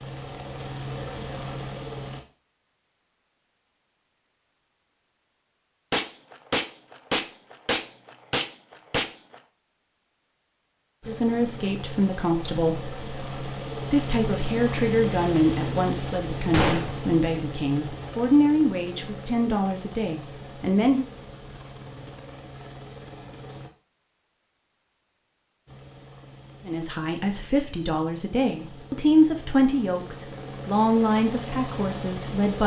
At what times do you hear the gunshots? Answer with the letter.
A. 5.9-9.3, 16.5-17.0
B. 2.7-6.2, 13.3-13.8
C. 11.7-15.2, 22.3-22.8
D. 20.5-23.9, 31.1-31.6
A.